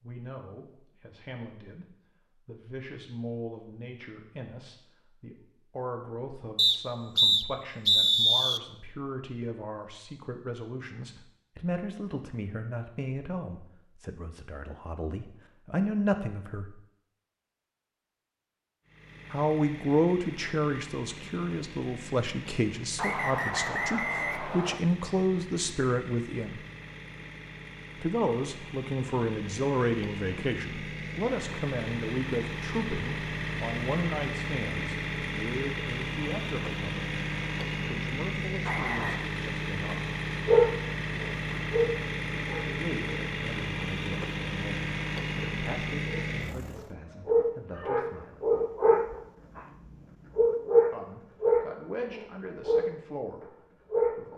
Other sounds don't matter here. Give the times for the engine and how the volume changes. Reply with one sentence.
The engine can be heard from 18.9 to 47.0 s, getting louder.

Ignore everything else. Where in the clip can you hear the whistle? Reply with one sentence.
You can hear the whistle from 6.5 to 8.6 s, from 22.9 to 24.8 s and from 38.6 to 39.2 s.